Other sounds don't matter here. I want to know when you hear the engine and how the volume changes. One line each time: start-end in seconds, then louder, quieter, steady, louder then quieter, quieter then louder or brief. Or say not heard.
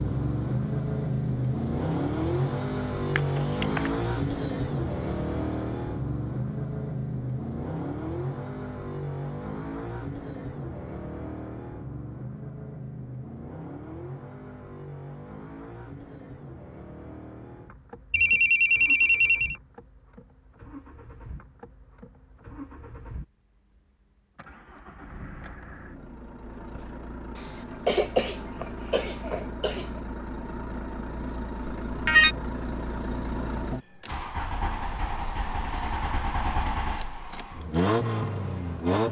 0.0-39.0 quieter then louder.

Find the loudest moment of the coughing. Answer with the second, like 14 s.
28 s.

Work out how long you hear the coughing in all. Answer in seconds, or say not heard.
3 s.